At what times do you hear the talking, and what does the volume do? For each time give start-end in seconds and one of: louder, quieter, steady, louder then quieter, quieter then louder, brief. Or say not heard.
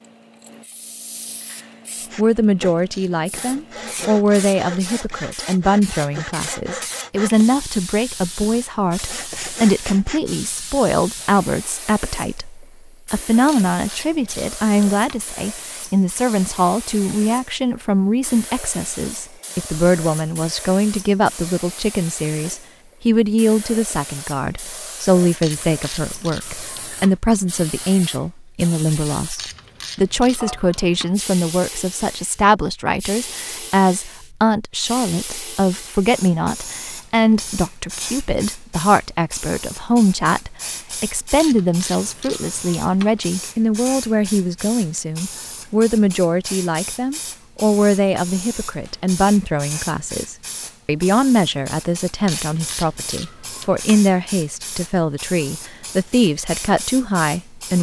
2.1-57.7 steady.